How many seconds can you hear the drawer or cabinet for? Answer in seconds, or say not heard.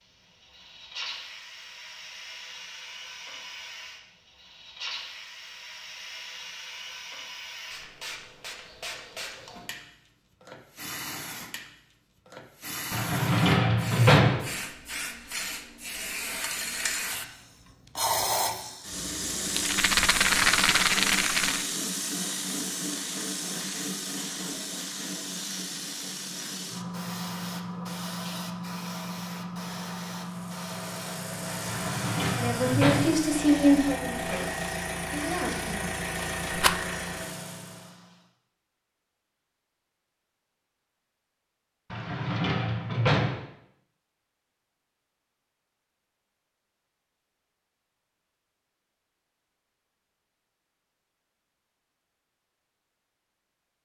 5 s.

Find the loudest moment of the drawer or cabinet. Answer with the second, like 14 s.
14 s.